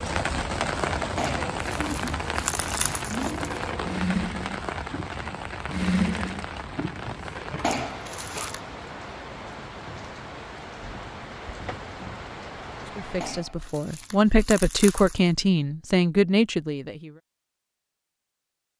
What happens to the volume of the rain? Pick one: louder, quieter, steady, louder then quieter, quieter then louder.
quieter.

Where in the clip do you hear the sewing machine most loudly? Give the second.
6 s.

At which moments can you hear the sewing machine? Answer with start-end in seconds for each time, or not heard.
0.0-8.5.